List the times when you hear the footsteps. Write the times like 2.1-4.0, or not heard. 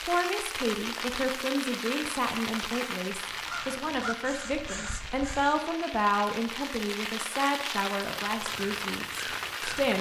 not heard.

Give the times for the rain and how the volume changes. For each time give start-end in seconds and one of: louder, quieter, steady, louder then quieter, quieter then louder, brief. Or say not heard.
0.0-9.9 quieter then louder.